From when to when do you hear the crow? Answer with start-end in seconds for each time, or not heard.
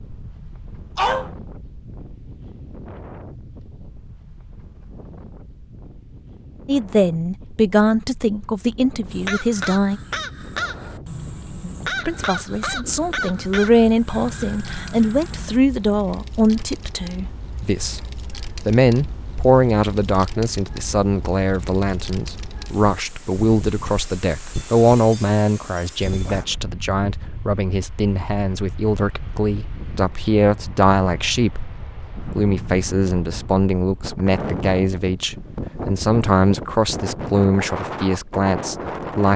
9.1-15.6.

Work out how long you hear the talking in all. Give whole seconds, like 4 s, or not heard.
31 s.